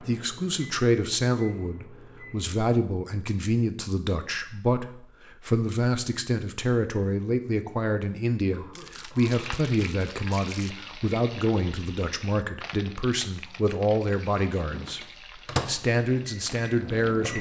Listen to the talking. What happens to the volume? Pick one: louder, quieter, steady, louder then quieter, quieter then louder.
steady.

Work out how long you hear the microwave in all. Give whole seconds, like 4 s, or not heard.
5 s.